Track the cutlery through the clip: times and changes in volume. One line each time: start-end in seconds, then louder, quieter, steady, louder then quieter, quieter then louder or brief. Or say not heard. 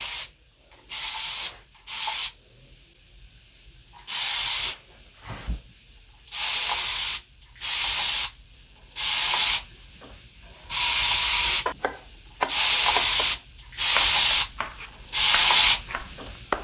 not heard.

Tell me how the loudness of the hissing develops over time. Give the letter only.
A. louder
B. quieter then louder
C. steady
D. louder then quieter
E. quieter
A.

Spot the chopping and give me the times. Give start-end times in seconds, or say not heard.
10.7-16.5.